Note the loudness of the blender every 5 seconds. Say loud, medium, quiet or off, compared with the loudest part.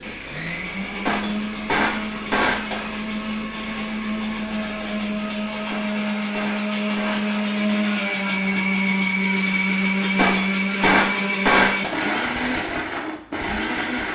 medium, loud, loud.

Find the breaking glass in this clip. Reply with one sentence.
The breaking glass can be heard from 1.1 to 3.0 s, from 5.7 to 7.4 s and from 10.2 to 11.9 s.